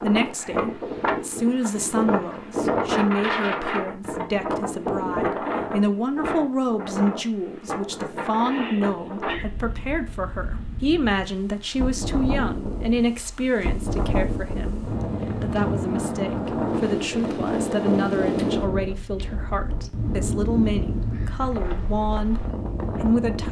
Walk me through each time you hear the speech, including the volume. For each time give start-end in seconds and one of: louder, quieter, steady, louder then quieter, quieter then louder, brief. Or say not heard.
0.0-23.4 steady.